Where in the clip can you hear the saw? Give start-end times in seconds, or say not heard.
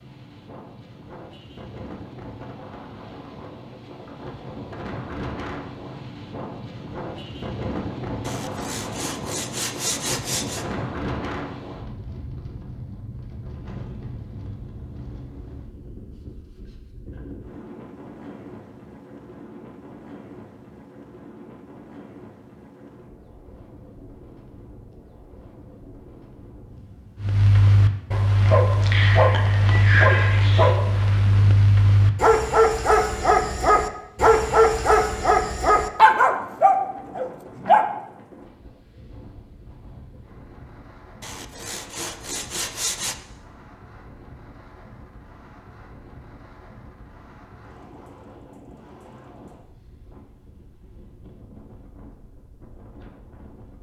8.2-10.7, 41.2-43.1.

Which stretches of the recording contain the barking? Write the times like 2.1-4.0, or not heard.
27.2-37.9.